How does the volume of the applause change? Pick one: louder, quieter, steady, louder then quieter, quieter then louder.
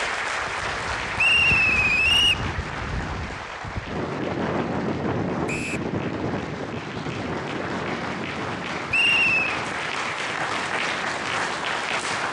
quieter then louder.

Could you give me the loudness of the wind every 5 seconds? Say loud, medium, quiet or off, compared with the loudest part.
loud, loud, medium.